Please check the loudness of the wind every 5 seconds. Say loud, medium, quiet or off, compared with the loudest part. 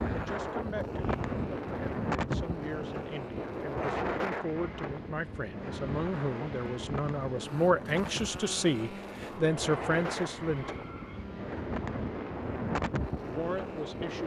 loud, medium, loud.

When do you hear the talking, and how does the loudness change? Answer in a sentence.
You can hear the talking from 0.1 to 10.8 s, getting louder; and briefly from 13.2 to 14.2 s.